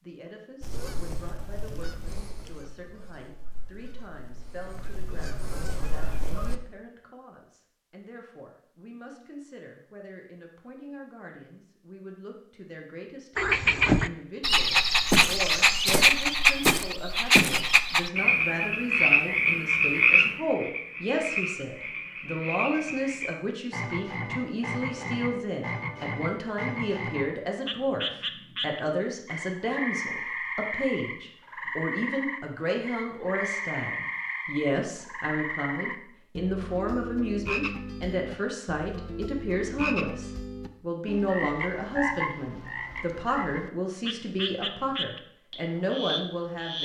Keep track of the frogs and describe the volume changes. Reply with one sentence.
The loudness of the frogs goes down.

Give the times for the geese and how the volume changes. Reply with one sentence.
The geese can be heard from 0.6 to 6.5 s, getting quieter then louder.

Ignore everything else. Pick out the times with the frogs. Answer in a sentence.
The frogs can be heard from 13.3 to 46.7 s.